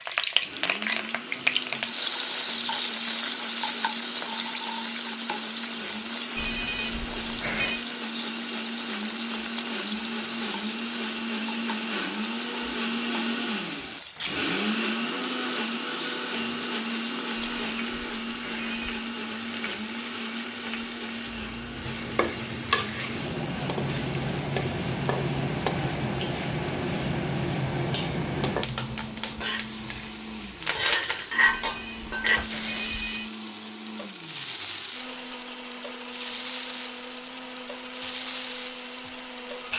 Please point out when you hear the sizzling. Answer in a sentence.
You can hear the sizzling from 0.0 to 39.7 s.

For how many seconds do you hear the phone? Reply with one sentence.
The phone can be heard for 5 seconds in total.